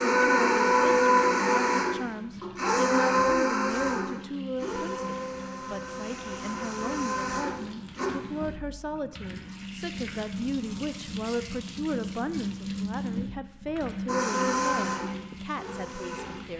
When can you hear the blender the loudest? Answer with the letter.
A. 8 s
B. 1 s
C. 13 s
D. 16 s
B.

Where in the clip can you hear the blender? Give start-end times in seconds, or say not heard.
0.0-8.1, 14.1-16.4.